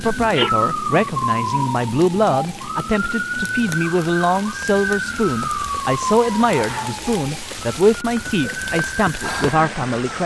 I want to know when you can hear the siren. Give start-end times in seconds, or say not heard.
0.0-10.2.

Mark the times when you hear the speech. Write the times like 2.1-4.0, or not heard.
0.0-10.2.